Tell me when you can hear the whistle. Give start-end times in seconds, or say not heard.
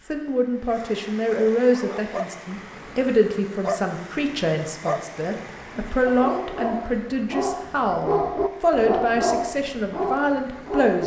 not heard.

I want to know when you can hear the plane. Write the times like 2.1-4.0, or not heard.
not heard.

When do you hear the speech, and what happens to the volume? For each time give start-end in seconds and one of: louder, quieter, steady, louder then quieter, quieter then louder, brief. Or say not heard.
0.1-11.0 steady.